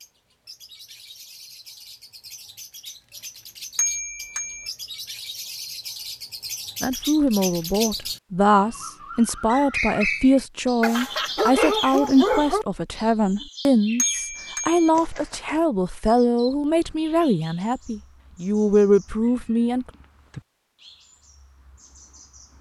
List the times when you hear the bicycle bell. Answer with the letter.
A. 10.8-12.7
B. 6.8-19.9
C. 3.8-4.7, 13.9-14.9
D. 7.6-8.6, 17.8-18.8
C.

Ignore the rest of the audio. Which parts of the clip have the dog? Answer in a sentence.
You can hear the dog from 10.8 to 12.7 s.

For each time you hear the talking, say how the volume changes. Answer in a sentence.
The talking can be heard from 6.8 to 19.9 s, at a steady volume.